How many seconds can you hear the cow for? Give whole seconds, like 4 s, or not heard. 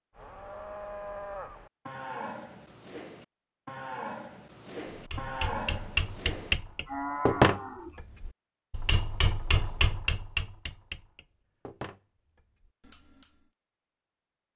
8 s.